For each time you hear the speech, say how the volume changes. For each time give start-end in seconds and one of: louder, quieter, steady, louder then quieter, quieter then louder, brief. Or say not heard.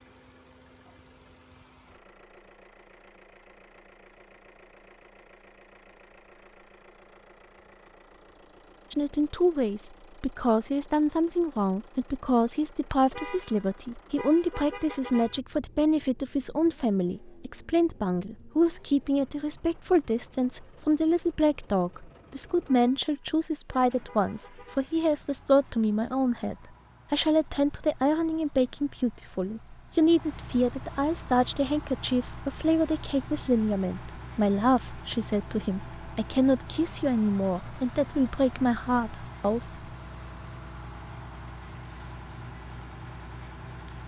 8.9-39.7 steady.